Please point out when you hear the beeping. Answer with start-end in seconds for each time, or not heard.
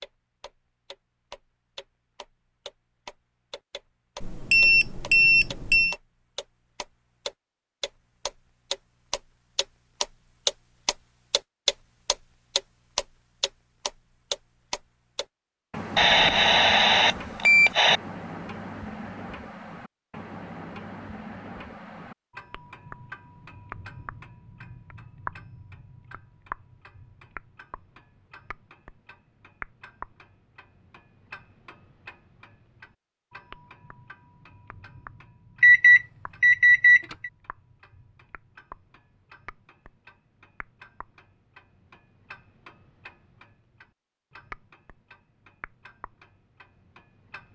4.2-6.0, 15.9-18.0, 35.6-37.3.